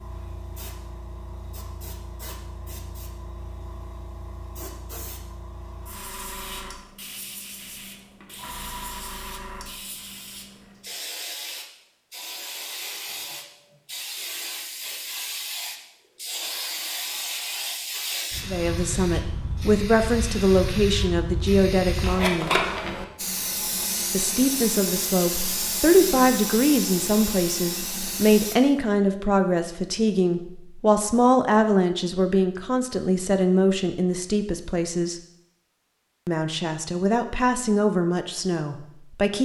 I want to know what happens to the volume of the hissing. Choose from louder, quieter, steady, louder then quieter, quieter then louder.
louder.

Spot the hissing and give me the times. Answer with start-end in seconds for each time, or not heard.
0.0-28.6.